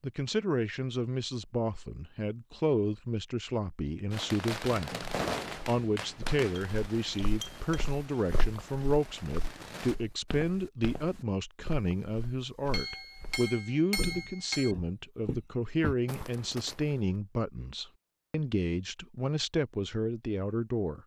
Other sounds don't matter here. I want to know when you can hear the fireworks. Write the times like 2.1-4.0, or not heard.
4.1-9.9.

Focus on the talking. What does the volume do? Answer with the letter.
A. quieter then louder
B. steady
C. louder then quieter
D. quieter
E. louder
B.